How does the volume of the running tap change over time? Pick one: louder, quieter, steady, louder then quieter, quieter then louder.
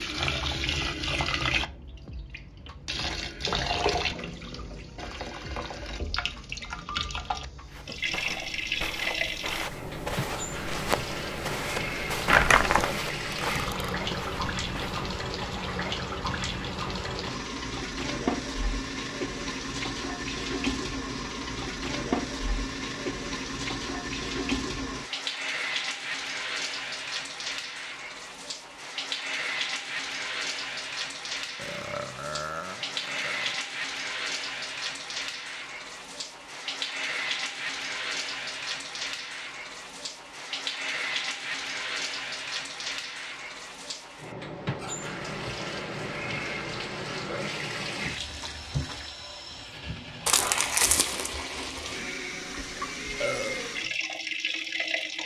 steady.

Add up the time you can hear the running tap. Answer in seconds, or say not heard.
55 s.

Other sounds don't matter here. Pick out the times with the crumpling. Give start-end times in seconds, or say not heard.
12.2-12.9, 50.2-51.3.